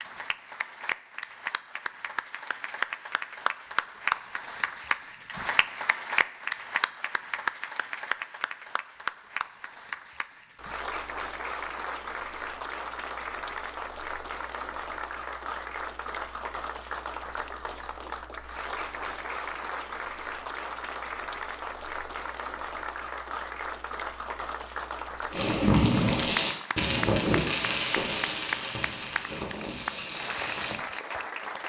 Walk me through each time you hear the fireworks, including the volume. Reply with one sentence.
You can hear the fireworks from 25.3 to 30.8 s, getting quieter.